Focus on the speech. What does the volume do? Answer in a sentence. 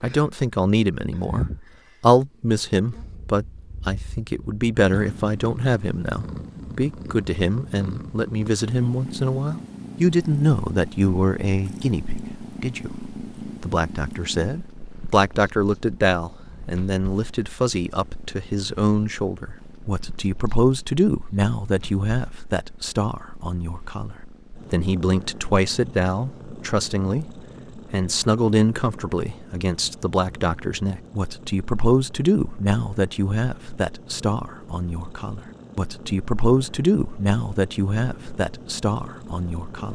The loudness of the speech stays about the same.